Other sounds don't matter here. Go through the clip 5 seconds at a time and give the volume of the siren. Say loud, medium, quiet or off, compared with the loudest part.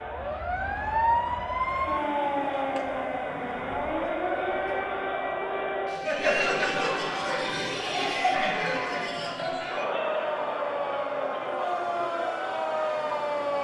loud, medium, loud.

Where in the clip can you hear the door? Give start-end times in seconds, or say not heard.
not heard.